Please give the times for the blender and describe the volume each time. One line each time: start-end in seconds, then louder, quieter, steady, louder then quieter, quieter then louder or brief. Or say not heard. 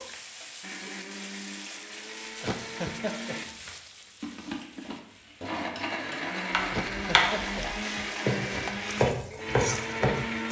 0.0-10.4 louder.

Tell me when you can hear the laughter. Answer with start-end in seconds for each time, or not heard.
2.4-3.4, 6.7-7.8.